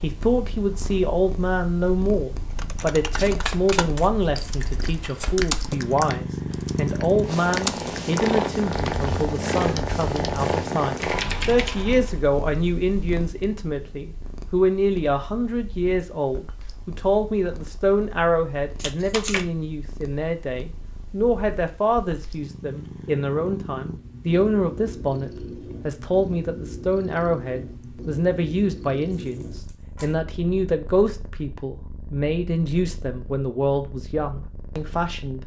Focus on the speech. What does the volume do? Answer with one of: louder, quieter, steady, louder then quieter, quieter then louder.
steady.